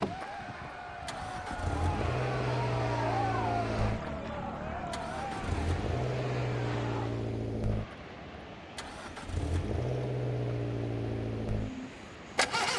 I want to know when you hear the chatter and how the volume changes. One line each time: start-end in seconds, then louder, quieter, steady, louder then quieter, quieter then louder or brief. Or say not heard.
0.0-7.1 louder then quieter.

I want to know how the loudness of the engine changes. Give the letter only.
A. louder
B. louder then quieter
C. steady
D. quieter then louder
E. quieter
C.